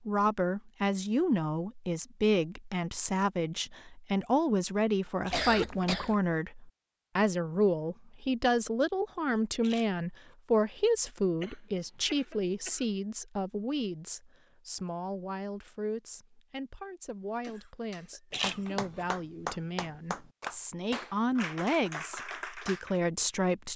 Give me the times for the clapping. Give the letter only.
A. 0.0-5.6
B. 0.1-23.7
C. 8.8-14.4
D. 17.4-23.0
D.